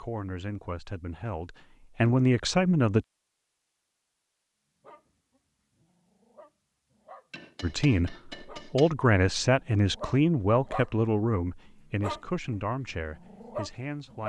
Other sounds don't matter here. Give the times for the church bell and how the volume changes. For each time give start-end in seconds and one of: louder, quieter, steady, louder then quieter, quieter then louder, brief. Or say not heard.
not heard.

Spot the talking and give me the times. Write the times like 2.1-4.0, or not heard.
0.0-3.0, 7.6-14.2.